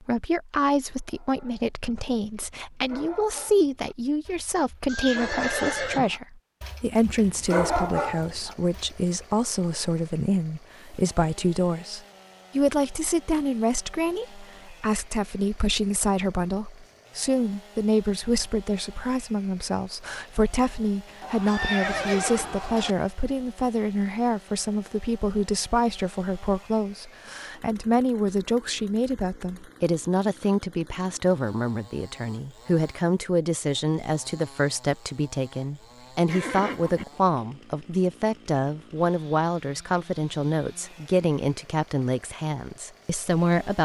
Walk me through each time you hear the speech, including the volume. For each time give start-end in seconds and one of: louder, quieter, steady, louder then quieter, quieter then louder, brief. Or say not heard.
0.1-43.7 steady.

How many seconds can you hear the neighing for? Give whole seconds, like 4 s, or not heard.
4 s.